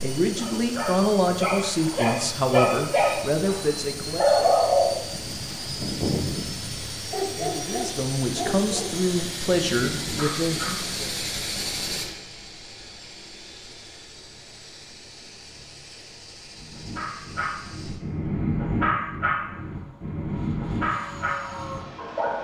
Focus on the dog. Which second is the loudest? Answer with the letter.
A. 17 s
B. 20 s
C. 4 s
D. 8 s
C.